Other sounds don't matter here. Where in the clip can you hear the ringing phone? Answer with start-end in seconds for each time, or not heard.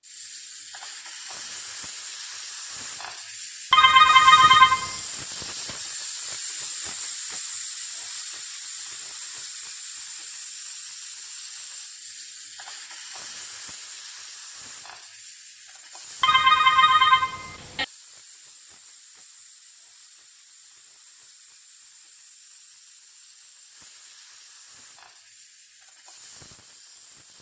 3.7-5.0, 16.2-17.9.